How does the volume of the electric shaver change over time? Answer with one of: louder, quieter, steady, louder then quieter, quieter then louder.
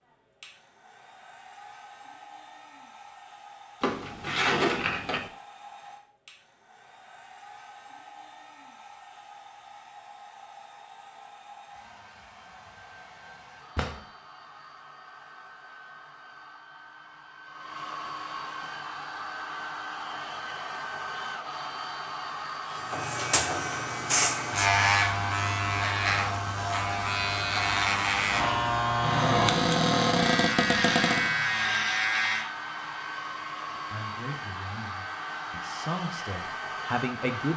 quieter.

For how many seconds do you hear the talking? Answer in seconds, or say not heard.
4 s.